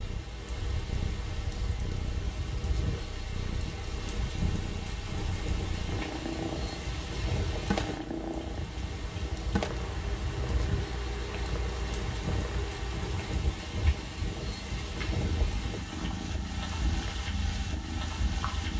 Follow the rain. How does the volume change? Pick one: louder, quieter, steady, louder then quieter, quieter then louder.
steady.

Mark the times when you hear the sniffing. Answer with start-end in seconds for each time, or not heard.
not heard.